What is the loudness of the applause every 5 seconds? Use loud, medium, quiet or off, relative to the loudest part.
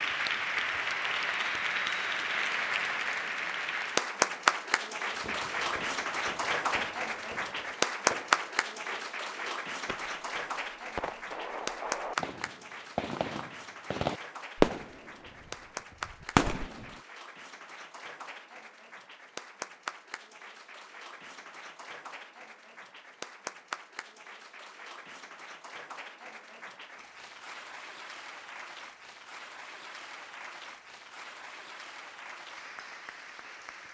loud, loud, medium, quiet, quiet, quiet, quiet.